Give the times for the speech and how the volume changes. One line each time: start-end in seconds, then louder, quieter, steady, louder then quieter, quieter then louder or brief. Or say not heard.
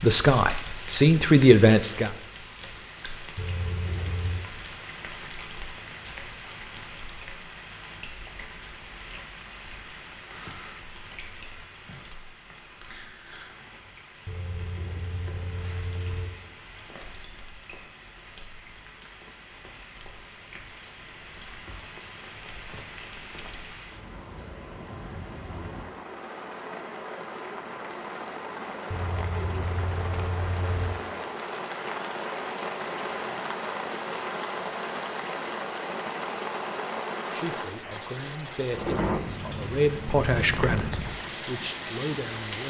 0.0-2.1 brief
37.2-42.6 louder then quieter.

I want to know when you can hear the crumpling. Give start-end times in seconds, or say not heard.
40.5-41.2.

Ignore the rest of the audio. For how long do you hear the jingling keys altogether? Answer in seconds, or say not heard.
5 s.